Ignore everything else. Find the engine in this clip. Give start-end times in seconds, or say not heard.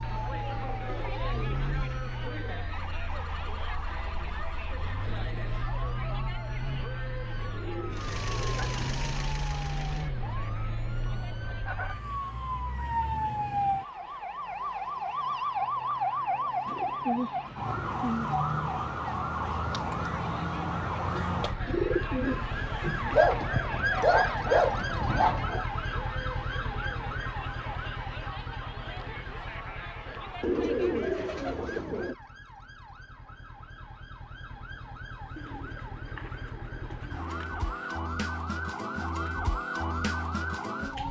7.9-11.8.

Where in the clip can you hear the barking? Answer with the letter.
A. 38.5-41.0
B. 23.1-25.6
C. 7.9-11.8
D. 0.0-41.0
B.